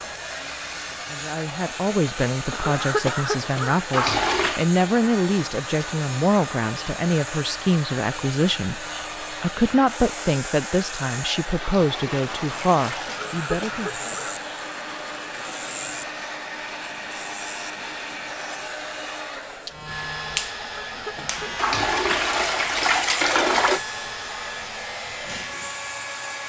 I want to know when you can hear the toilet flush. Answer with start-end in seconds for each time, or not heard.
3.9-4.7, 11.6-13.2, 21.6-23.8.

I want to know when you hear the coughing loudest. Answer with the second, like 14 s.
3 s.